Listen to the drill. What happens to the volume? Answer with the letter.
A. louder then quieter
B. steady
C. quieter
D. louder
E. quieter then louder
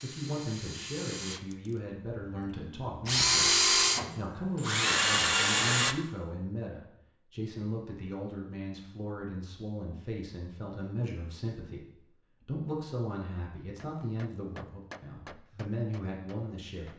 E.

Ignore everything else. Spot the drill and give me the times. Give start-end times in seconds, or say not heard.
0.0-6.0.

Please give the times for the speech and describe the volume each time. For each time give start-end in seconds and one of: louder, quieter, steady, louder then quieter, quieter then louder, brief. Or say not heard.
0.0-16.9 steady.